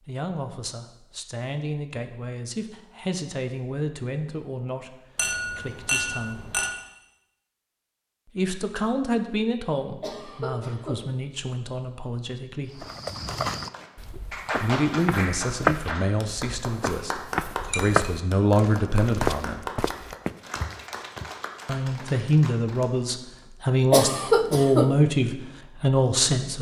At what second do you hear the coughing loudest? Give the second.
24 s.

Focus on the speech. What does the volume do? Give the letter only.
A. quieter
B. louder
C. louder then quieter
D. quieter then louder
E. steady
B.